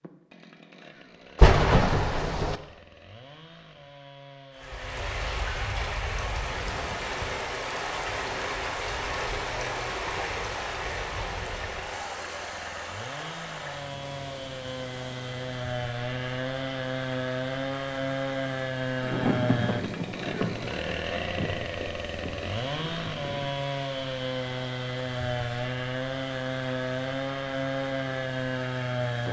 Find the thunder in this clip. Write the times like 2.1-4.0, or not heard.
1.4-2.5, 19.0-23.6.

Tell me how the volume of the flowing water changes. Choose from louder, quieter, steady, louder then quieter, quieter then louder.
quieter.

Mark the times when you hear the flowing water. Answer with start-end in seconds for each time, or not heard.
4.5-29.2.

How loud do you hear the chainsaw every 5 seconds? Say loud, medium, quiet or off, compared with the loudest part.
quiet, quiet, medium, loud, loud, loud.